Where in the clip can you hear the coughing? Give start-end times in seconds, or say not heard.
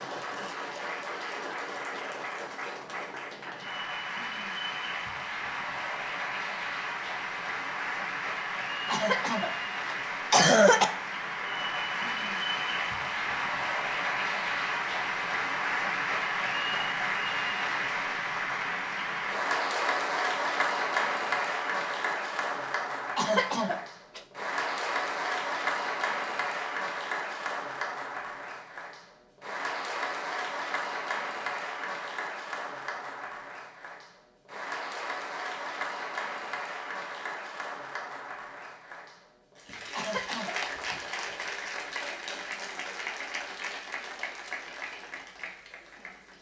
8.9-10.8, 23.1-24.2, 40.0-40.5.